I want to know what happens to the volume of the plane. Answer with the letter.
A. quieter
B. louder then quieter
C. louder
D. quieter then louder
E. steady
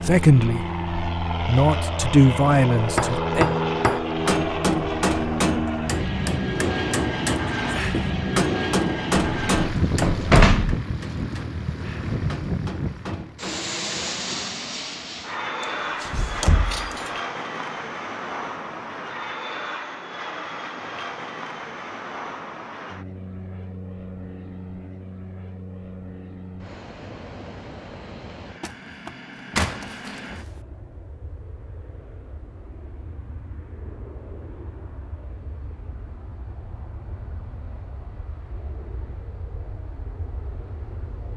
A.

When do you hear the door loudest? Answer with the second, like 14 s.
10 s.